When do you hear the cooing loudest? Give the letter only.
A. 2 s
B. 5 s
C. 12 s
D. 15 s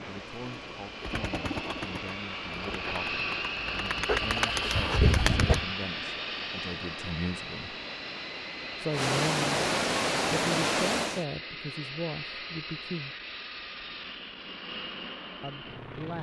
B.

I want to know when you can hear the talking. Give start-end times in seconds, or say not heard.
0.0-7.8, 8.8-9.7, 10.3-13.2, 15.4-16.1.